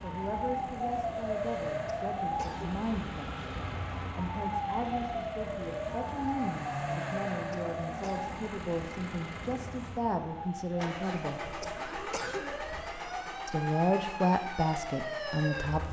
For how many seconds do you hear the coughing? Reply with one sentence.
The coughing can be heard for 3 seconds in total.